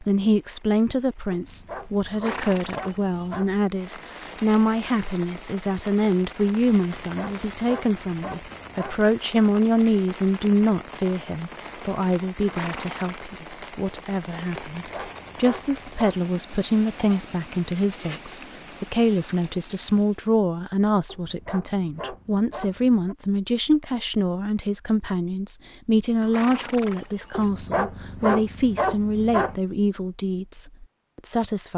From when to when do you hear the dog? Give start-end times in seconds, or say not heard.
1.3-3.5, 7.0-9.1, 14.7-16.2, 21.1-23.1, 27.3-29.6.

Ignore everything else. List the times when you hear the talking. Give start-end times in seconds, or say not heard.
0.0-31.7.